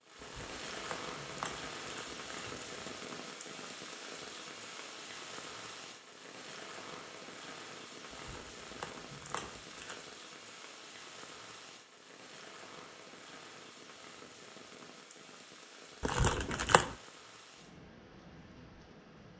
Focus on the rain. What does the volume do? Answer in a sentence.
The loudness of the rain goes down.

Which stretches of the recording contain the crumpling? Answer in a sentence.
You can hear the crumpling from 0.2 to 2.7 s, from 8.1 to 10.0 s and from 16.0 to 16.9 s.